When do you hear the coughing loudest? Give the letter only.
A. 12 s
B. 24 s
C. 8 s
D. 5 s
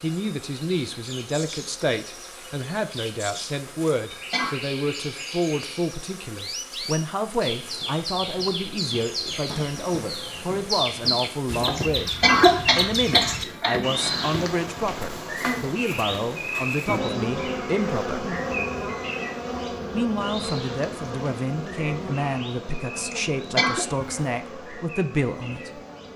A.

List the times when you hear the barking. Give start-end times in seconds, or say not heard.
not heard.